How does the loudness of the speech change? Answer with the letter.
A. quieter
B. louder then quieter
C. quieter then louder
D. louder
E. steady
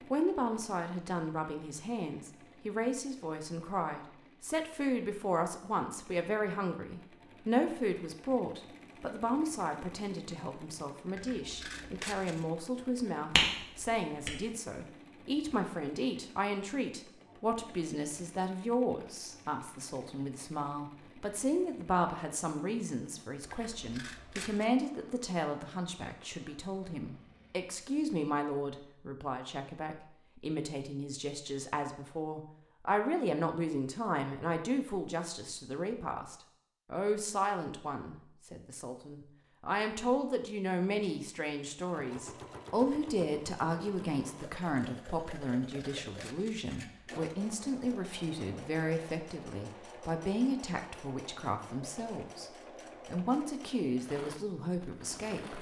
E.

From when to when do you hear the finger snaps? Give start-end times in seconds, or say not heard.
13.3-14.3.